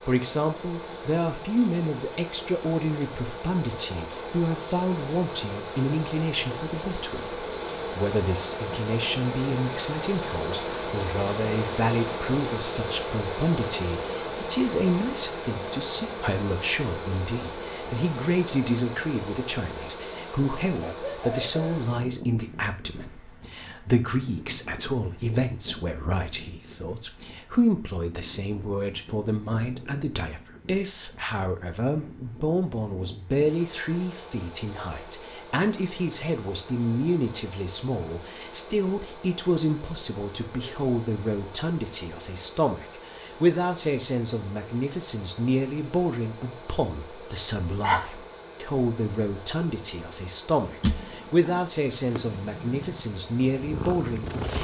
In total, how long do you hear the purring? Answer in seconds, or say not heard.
4 s.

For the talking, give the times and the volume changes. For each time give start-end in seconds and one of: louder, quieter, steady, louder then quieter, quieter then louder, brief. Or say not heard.
0.1-54.6 steady.